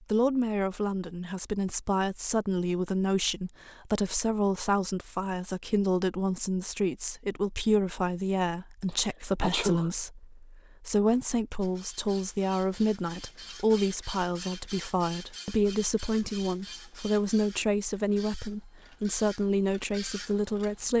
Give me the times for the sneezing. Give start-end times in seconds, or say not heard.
8.8-9.9.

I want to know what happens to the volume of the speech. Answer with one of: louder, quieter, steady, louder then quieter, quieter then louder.
steady.